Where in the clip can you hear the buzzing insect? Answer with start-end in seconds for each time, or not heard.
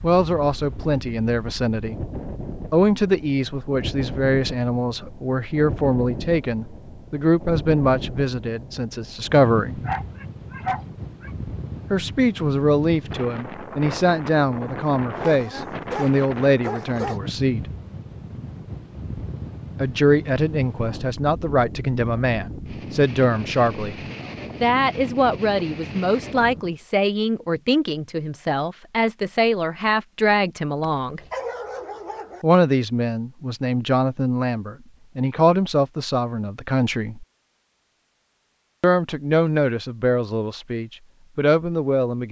not heard.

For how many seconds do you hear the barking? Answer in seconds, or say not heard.
5 s.